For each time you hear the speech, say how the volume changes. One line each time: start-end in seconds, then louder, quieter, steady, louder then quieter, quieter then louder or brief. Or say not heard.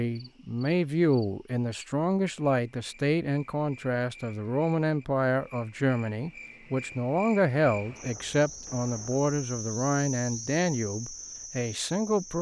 0.0-12.3 steady.